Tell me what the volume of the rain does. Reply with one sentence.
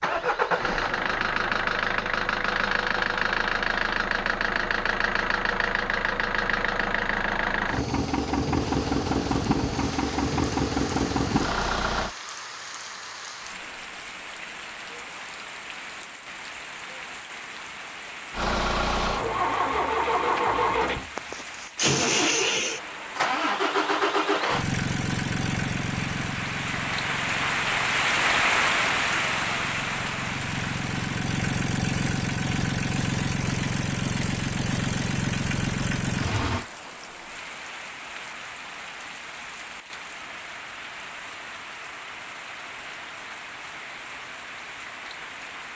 The loudness of the rain goes up, then down.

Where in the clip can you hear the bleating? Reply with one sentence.
You can't hear the bleating here.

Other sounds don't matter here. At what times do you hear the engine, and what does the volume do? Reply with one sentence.
The engine can be heard from 0.0 to 12.2 s, at a steady volume; and from 18.3 to 36.6 s, getting quieter then louder.